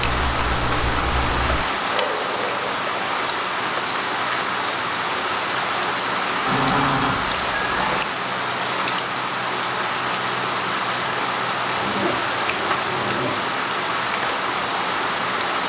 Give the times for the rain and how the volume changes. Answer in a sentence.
You can hear the rain from 0.0 to 15.6 s, at a steady volume.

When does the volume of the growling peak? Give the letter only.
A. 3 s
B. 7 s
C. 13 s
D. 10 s
B.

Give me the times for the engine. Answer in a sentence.
You can hear the engine from 0.0 to 1.6 s.